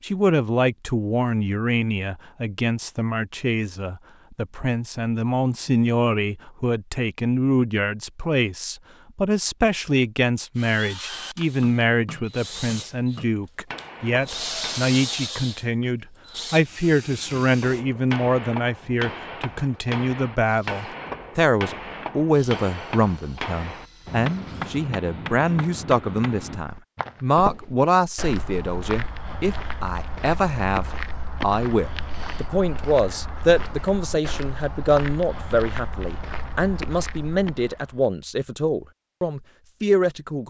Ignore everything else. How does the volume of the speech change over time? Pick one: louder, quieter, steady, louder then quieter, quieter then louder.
steady.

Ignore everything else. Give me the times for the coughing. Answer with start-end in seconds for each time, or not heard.
not heard.